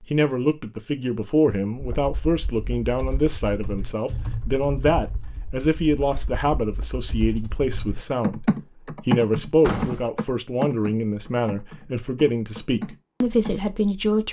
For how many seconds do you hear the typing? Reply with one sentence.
The typing can be heard for 12 seconds in total.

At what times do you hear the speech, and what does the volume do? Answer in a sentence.
You can hear the speech from 0.0 to 14.2 s, at a steady volume.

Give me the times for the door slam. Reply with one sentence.
You can hear the door slam from 9.6 to 10.1 s.